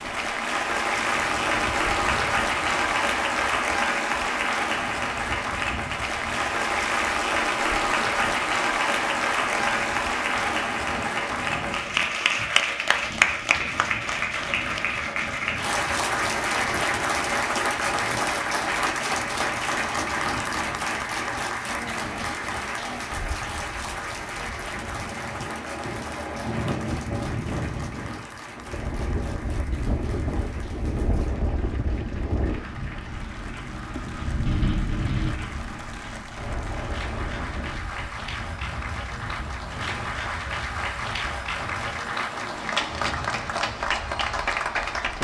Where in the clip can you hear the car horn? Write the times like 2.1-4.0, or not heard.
not heard.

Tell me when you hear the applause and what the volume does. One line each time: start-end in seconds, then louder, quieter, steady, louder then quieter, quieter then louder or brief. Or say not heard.
0.0-45.1 quieter then louder.